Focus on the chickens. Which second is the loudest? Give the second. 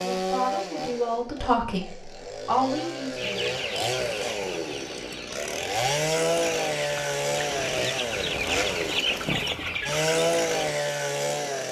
9 s.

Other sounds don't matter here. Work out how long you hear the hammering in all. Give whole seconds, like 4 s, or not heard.
not heard.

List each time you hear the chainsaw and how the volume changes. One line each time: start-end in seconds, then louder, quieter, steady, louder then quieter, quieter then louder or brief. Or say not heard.
0.0-11.6 louder.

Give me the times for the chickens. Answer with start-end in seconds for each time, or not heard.
3.1-10.6.